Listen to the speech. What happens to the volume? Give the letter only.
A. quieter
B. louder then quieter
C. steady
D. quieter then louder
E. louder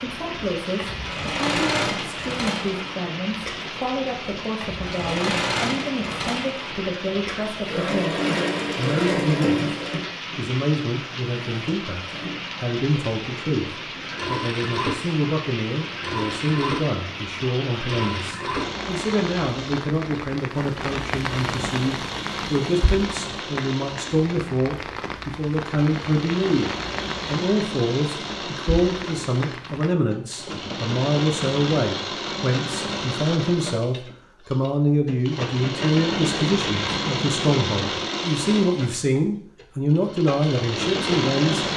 E.